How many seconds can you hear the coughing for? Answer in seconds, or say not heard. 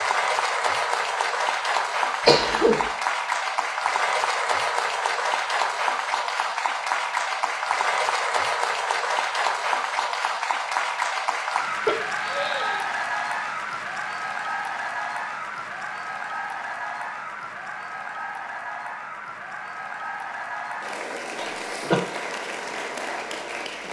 2 s.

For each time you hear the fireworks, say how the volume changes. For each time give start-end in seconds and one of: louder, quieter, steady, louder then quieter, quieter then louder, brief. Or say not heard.
not heard.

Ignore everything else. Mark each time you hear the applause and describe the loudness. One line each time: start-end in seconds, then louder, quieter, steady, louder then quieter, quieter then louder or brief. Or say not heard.
0.0-23.8 quieter.